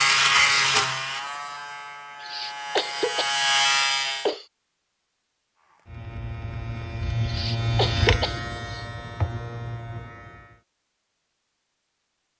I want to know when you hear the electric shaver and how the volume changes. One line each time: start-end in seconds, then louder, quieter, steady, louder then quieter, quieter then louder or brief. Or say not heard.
0.0-4.3 quieter then louder
5.6-10.6 louder then quieter.